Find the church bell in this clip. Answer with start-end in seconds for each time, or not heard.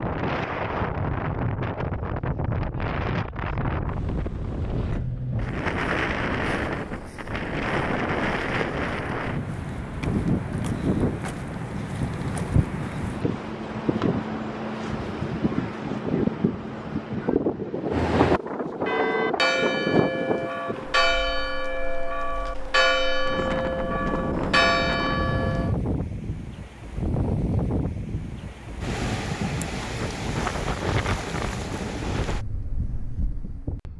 17.9-25.8.